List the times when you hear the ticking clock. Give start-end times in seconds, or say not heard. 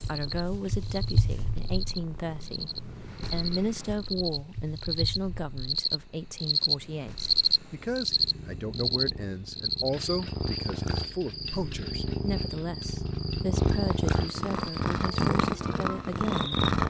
not heard.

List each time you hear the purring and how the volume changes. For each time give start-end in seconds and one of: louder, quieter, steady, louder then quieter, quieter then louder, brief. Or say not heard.
0.0-16.8 quieter then louder.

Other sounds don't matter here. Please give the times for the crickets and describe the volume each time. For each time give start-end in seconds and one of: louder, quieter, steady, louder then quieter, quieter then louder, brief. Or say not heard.
0.0-16.7 louder then quieter.